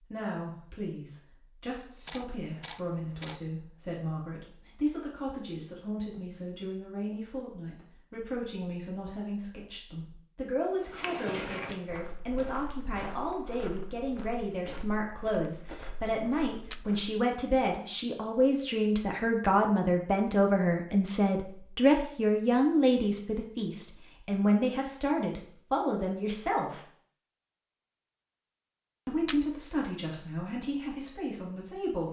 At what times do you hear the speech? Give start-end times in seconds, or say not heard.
0.0-26.8, 29.1-32.0.